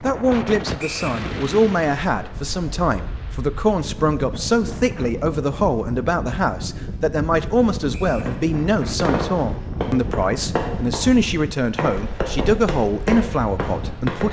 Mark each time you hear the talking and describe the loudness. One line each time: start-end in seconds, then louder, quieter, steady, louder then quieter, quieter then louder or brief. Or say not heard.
0.0-14.2 steady.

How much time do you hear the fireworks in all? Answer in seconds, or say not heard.
6 s.